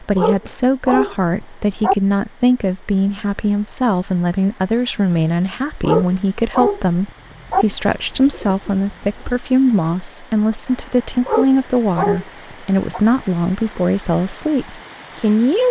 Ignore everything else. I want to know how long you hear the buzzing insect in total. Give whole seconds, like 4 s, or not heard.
not heard.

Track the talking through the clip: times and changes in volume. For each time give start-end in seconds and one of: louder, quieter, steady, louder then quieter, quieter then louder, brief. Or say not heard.
0.0-15.6 steady.